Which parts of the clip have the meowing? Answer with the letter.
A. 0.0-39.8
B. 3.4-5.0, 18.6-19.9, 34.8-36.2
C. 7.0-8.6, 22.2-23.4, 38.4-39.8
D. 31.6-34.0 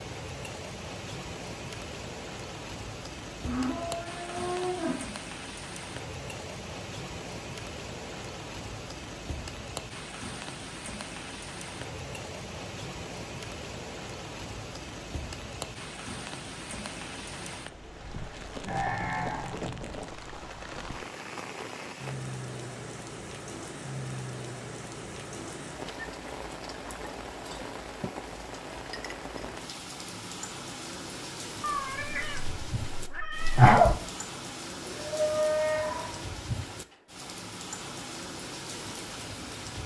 D.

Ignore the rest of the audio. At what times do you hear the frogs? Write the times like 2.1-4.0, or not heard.
not heard.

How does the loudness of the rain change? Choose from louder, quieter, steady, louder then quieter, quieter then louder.
steady.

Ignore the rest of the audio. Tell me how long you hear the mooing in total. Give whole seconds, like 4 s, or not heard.
4 s.